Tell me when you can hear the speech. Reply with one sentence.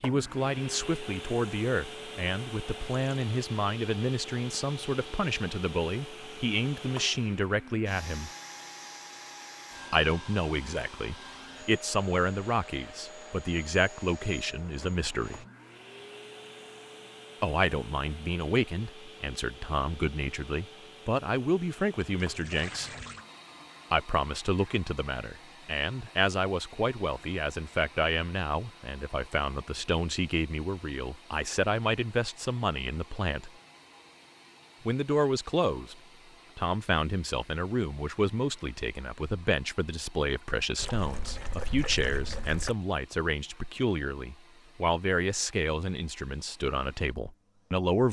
You can hear the speech from 0.0 to 8.3 s, from 9.9 to 15.4 s, from 17.4 to 22.9 s, from 23.9 to 33.5 s, from 34.9 to 36.0 s and from 36.5 to 48.0 s.